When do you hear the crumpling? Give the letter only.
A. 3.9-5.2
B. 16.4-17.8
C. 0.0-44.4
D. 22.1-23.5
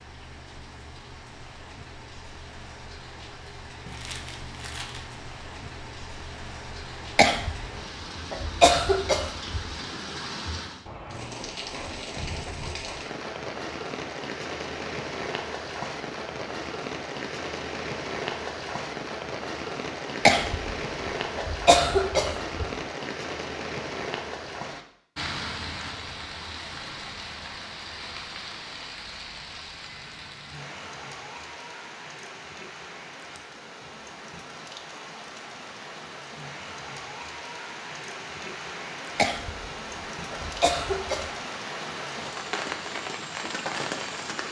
A.